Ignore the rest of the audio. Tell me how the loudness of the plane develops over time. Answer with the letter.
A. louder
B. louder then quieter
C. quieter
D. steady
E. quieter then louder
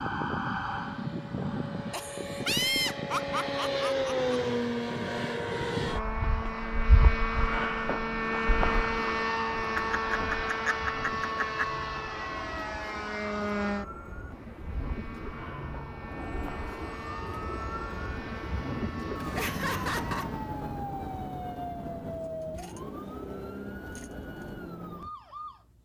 C.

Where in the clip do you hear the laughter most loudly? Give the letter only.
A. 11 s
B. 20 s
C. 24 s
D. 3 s
D.